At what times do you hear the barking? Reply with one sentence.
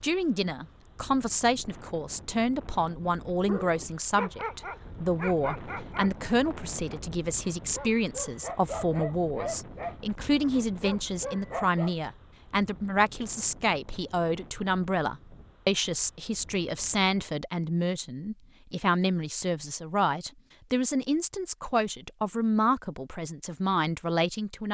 You can hear the barking from 3.5 to 11.9 s.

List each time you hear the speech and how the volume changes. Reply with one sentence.
You can hear the speech from 0.0 to 24.7 s, at a steady volume.